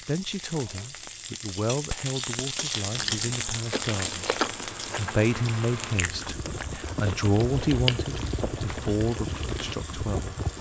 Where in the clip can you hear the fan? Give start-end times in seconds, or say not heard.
3.4-10.5.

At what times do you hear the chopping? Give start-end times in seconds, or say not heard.
not heard.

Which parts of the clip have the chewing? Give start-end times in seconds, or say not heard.
2.9-9.8.